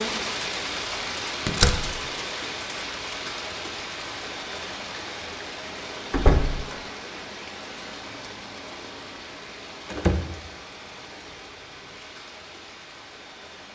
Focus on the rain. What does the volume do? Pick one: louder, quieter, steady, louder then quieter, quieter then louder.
quieter.